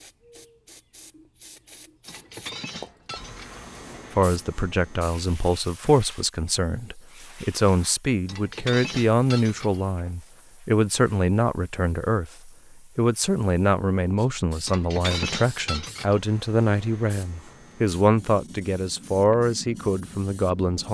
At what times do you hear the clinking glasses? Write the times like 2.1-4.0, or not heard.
2.0-3.6, 8.2-9.8, 14.7-16.2.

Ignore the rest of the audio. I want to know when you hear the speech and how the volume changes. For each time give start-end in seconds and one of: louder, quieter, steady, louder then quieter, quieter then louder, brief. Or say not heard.
4.1-20.8 steady.